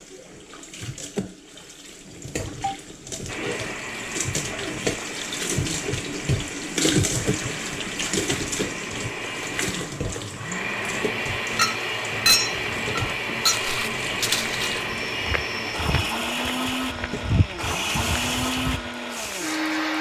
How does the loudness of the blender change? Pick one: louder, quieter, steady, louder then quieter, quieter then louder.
louder.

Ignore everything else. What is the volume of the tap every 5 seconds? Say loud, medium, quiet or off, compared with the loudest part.
medium, loud, medium, medium.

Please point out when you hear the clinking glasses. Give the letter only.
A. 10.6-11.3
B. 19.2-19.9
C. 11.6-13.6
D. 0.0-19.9
C.